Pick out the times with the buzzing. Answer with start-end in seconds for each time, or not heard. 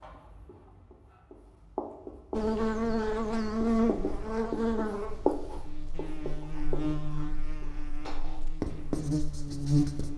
2.3-10.1.